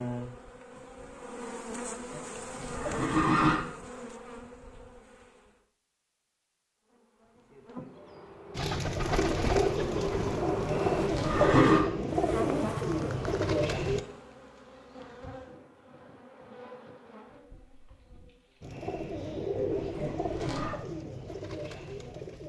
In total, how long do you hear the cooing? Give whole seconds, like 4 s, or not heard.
9 s.